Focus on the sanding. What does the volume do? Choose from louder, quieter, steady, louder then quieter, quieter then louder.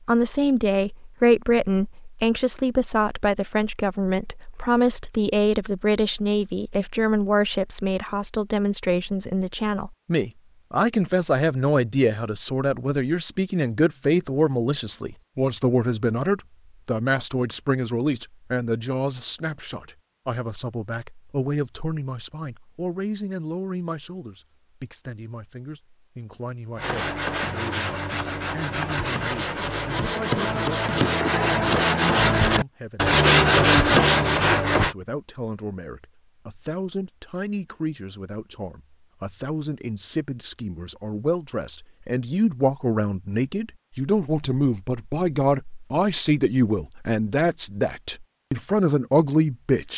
louder.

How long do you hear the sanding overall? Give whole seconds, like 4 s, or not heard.
8 s.